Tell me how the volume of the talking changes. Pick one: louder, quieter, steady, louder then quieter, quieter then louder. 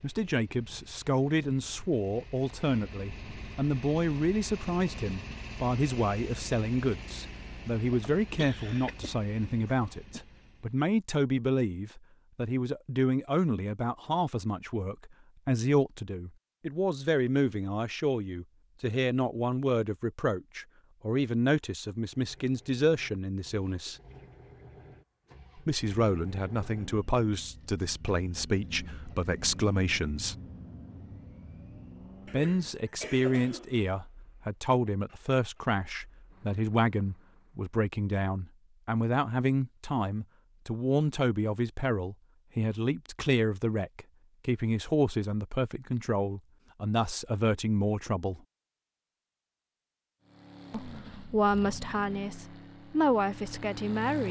steady.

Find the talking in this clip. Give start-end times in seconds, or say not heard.
0.0-23.9, 25.6-30.4, 32.2-48.4, 50.7-54.2.